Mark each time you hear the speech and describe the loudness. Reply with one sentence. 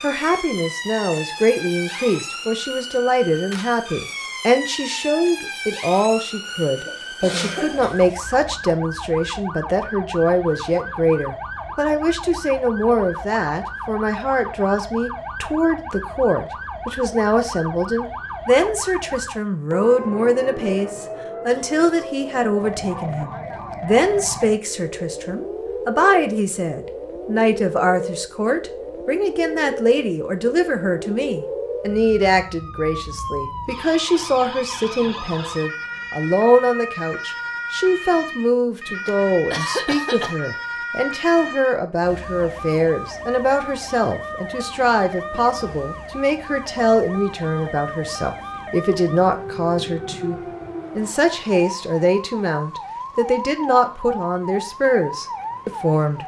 The speech can be heard from 0.0 to 56.2 s, at a steady volume.